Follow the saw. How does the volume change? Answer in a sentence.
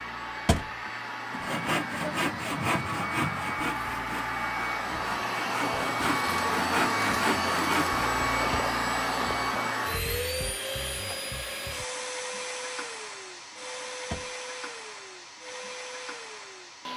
The loudness of the saw goes down, then up.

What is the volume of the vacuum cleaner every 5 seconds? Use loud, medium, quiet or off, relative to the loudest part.
medium, loud, medium, quiet.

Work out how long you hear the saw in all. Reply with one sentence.
The saw can be heard for 7 seconds in total.